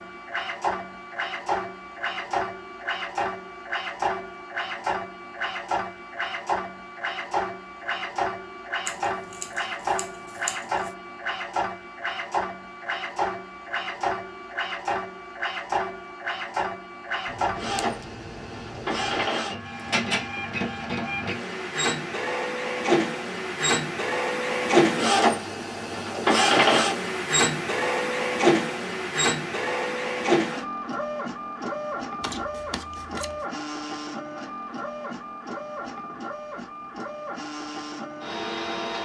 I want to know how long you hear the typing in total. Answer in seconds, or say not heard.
not heard.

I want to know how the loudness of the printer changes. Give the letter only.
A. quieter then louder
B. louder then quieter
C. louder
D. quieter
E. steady
B.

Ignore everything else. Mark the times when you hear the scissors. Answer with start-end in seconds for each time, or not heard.
8.8-10.9, 17.2-19.3, 32.2-33.5.